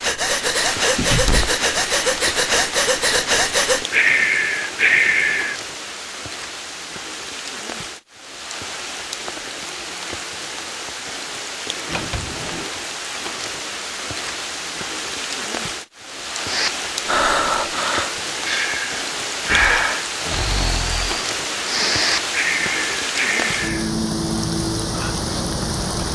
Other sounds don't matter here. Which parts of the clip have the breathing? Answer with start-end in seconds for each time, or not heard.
0.0-5.5, 16.4-23.9.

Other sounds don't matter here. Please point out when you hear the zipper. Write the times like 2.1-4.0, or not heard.
not heard.